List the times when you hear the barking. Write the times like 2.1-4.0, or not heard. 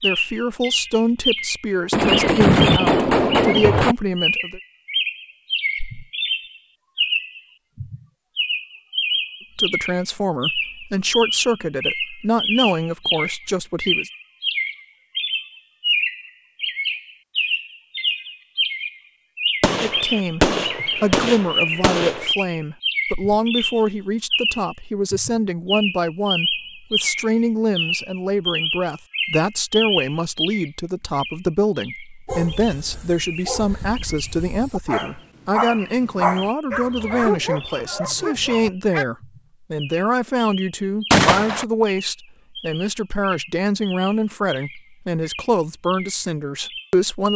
32.2-39.0.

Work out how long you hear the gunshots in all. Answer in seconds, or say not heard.
5 s.